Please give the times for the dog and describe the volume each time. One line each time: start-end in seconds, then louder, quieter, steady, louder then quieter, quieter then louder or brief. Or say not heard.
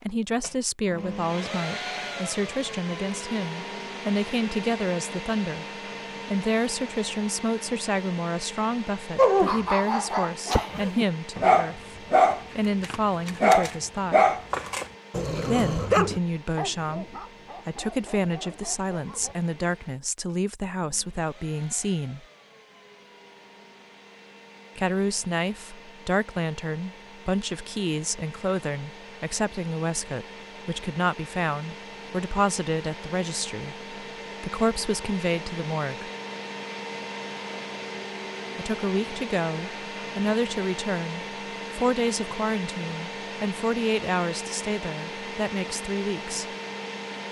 9.2-19.4 louder then quieter.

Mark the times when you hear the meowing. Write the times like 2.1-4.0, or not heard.
not heard.